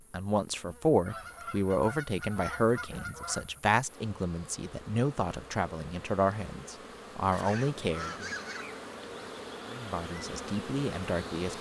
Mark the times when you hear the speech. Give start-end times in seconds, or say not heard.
0.1-8.2, 9.7-11.5.